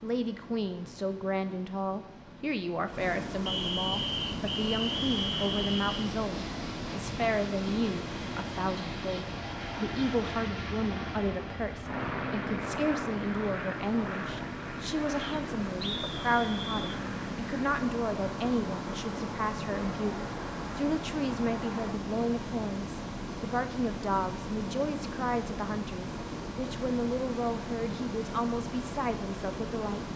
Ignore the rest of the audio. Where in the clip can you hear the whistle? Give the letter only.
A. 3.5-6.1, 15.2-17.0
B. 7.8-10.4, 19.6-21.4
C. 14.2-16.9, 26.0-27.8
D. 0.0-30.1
A.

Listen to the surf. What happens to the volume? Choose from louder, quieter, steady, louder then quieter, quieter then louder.
steady.